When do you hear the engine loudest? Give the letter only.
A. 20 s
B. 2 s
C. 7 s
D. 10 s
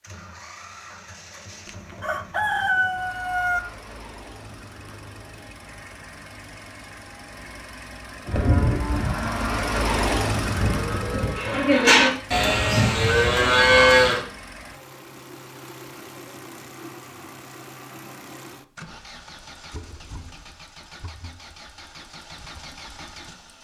D.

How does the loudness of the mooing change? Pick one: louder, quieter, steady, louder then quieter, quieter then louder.
louder.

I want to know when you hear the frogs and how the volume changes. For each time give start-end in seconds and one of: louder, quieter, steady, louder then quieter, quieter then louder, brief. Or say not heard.
not heard.